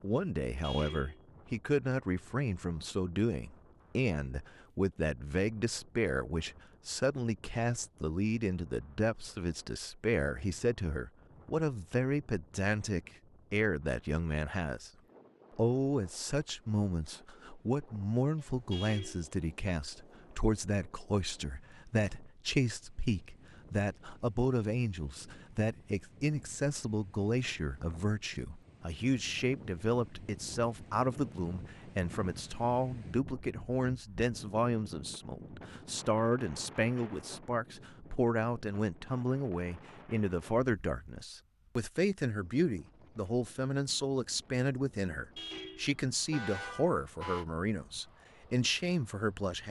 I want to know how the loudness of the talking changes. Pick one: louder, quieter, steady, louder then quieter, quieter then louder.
steady.